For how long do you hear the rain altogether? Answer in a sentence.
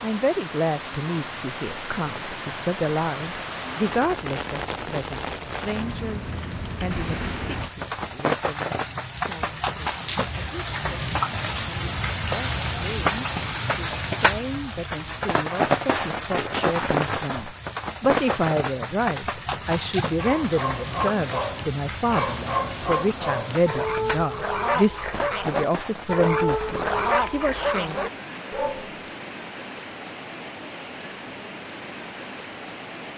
You can hear the rain for 33 seconds altogether.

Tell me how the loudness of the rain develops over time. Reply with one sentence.
The volume of the rain goes up, then down.